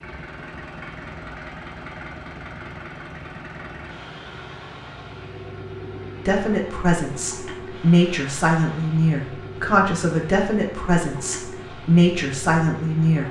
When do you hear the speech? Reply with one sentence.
You can hear the speech from 6.2 to 13.2 s.